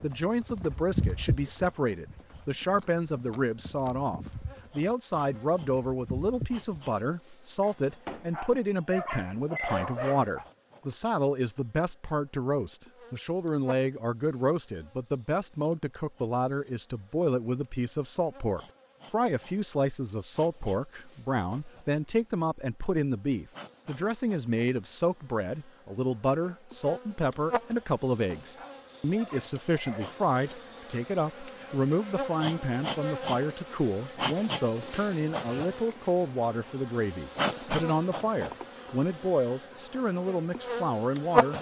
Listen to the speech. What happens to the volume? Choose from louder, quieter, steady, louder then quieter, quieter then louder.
steady.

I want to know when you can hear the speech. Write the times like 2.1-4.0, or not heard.
0.0-41.5.